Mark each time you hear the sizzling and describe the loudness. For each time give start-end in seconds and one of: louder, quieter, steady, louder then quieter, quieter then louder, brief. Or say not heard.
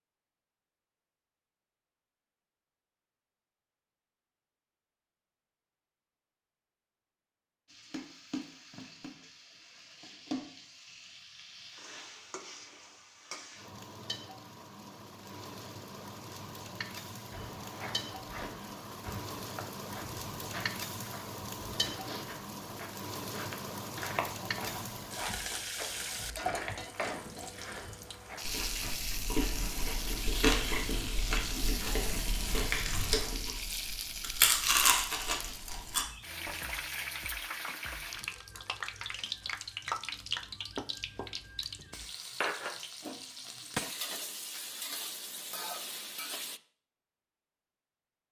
7.7-46.6 louder.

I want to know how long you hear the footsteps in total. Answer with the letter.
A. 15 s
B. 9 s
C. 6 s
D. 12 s
D.